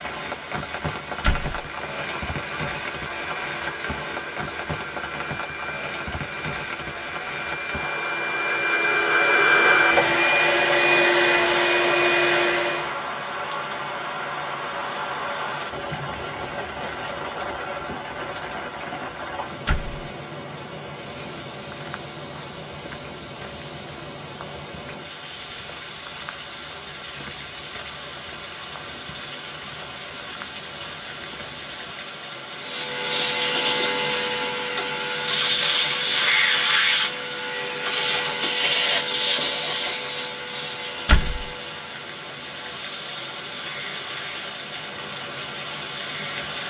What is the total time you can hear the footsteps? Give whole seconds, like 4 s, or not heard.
11 s.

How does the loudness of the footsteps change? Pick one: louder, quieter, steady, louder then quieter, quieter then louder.
steady.